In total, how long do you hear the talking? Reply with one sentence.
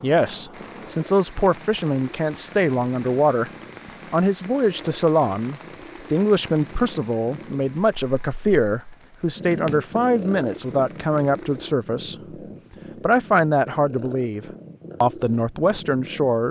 The talking can be heard for 15 seconds in total.